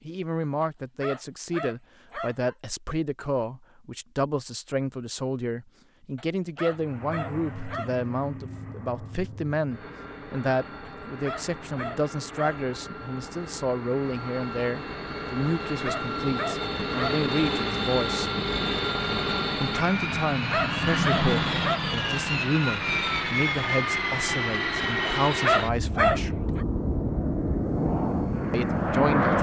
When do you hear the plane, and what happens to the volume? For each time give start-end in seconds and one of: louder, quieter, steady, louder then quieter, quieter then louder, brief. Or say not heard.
6.7-29.3 louder.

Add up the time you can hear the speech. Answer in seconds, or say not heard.
26 s.